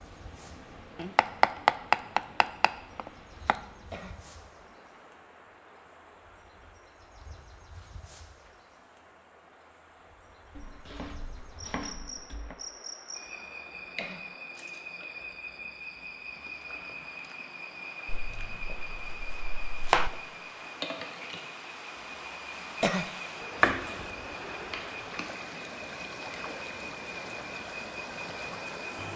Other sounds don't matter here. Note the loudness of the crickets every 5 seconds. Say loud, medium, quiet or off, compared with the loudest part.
quiet, quiet, loud, loud, loud, loud.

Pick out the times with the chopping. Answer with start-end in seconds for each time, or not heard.
0.9-3.6, 10.6-12.6, 18.1-20.1, 23.6-24.1.